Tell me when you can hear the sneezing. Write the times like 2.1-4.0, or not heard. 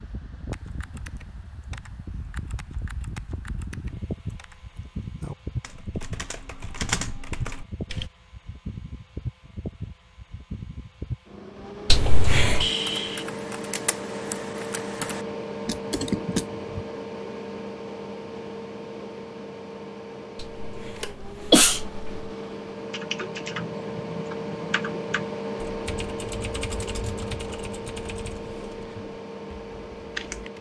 11.9-12.7, 20.4-22.2.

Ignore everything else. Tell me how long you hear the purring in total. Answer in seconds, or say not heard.
not heard.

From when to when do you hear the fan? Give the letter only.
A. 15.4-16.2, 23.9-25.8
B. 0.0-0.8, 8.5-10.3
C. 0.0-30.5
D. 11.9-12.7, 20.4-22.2
C.